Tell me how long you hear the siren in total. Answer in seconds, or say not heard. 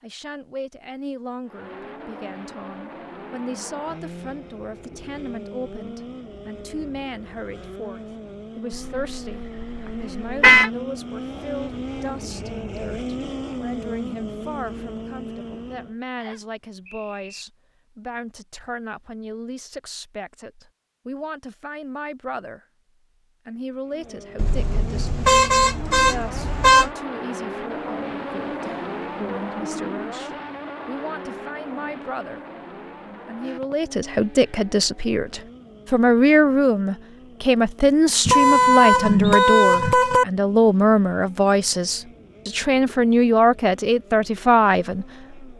not heard.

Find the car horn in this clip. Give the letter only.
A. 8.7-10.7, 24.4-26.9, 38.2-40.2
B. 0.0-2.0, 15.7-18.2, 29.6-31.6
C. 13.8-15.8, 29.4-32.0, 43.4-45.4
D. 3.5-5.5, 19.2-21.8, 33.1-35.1
A.